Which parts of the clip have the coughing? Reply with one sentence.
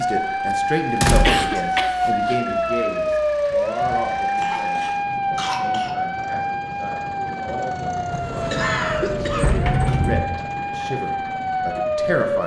The coughing can be heard from 1.2 to 2.4 s, from 4.3 to 6.0 s and from 8.5 to 9.6 s.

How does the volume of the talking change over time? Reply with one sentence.
The volume of the talking goes down, then up.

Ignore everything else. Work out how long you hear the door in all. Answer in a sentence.
You can hear the door for 3 seconds altogether.